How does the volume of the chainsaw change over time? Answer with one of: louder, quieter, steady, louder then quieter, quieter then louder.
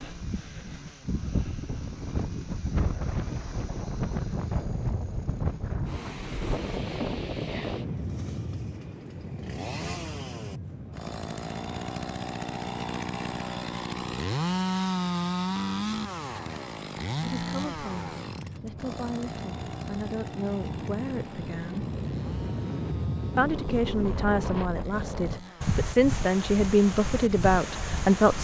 louder then quieter.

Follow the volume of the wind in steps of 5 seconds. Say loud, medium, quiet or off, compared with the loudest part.
loud, loud, medium, medium, loud, loud.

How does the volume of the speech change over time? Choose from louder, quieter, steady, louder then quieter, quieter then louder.
louder.